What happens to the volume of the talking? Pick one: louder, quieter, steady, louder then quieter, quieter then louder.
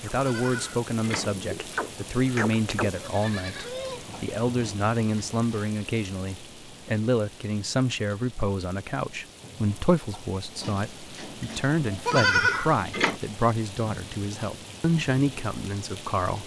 steady.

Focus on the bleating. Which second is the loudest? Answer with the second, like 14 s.
12 s.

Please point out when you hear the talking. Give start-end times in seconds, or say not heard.
0.0-16.4.